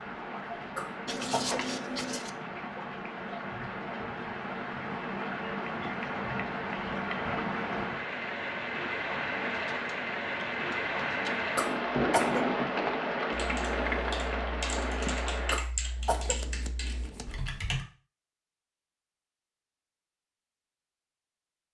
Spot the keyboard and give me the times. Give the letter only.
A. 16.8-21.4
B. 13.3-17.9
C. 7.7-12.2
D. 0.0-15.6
B.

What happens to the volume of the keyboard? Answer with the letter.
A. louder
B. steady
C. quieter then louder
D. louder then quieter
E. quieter
D.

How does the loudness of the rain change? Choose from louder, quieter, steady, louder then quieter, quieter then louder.
louder.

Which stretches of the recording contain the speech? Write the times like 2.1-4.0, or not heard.
not heard.